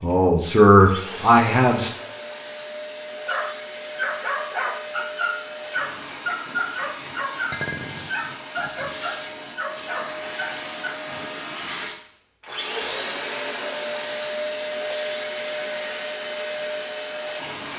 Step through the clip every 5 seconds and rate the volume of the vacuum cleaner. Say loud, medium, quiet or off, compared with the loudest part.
medium, medium, loud, loud.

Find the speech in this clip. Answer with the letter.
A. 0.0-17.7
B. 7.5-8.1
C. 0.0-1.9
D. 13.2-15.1
C.